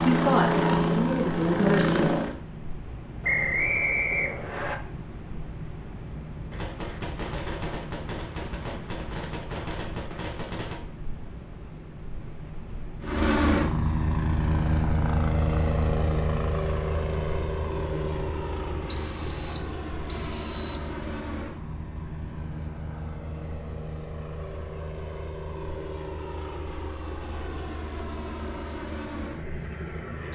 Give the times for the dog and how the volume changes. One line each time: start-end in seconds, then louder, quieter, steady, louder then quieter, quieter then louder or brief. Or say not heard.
not heard.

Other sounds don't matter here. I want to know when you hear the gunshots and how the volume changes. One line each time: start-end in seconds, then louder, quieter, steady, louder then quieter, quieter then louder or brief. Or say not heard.
6.5-10.8 steady.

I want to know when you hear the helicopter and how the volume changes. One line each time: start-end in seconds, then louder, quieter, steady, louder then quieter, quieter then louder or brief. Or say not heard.
0.0-2.4 brief
13.0-30.2 quieter.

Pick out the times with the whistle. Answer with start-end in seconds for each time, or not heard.
3.2-4.8, 18.9-20.9.